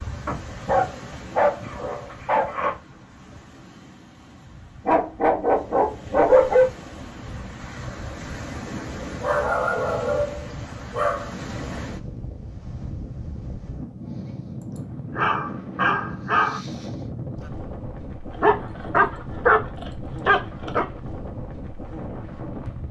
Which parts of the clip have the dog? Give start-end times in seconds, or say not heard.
0.2-2.8, 4.8-6.7, 9.2-11.3, 15.2-16.6, 18.4-20.9.